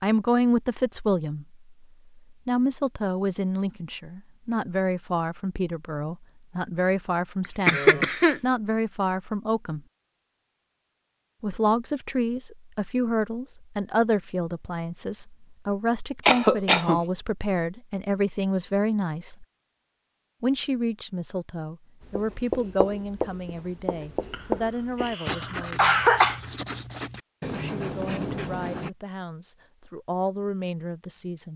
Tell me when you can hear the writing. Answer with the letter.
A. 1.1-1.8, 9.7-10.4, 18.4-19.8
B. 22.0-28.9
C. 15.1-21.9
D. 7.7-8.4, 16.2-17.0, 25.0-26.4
B.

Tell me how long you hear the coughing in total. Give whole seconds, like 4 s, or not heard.
3 s.